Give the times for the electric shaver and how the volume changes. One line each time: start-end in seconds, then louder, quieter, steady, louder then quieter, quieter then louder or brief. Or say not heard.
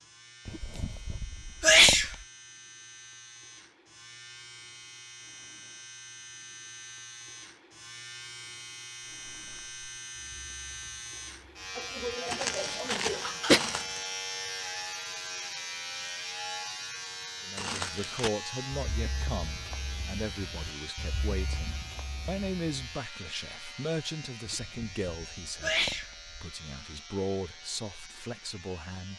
0.0-29.1 louder then quieter.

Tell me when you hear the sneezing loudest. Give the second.
2 s.